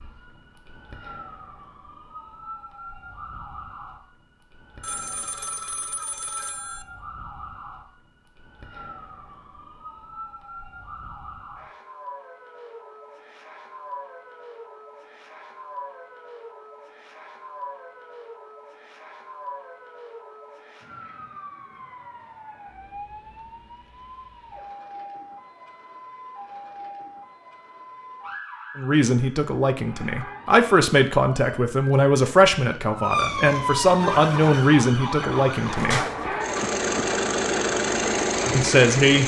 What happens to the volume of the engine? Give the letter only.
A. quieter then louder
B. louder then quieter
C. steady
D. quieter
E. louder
E.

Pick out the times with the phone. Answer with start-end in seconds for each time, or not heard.
4.8-6.8.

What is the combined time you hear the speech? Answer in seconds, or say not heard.
8 s.